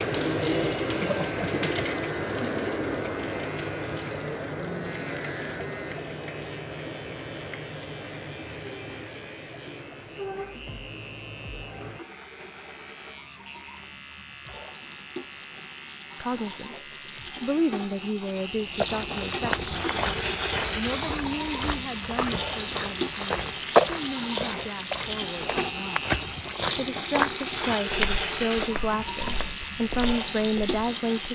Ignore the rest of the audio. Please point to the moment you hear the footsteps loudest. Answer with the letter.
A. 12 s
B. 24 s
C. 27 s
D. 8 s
B.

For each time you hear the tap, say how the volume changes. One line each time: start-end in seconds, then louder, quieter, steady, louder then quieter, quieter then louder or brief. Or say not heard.
0.0-31.2 quieter then louder.